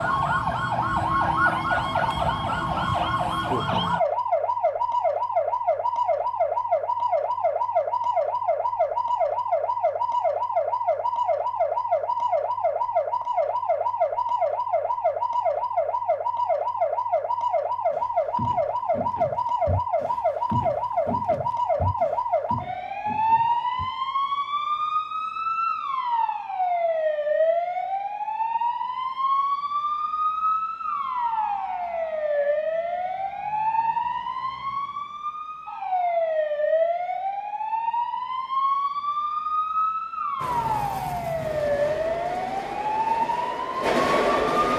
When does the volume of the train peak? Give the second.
44 s.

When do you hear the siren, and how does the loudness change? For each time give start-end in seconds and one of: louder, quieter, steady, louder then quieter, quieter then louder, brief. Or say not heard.
0.0-44.6 steady.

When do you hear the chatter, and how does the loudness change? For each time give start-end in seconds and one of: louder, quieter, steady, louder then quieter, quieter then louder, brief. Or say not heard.
not heard.